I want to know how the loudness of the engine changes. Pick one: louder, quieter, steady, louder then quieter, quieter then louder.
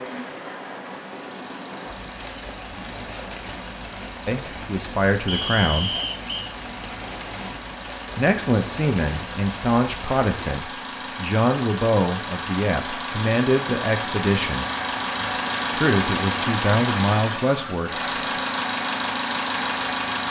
louder.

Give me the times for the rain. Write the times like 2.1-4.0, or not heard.
0.0-10.6.